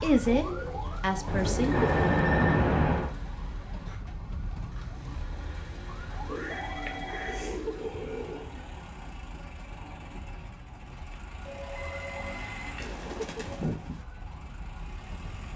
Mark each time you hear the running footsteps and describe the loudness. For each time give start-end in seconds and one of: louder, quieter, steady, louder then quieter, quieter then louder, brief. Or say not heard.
not heard.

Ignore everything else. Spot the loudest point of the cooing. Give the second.
14 s.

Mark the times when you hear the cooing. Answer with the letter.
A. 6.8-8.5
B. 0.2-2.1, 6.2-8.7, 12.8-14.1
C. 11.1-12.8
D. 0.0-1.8
B.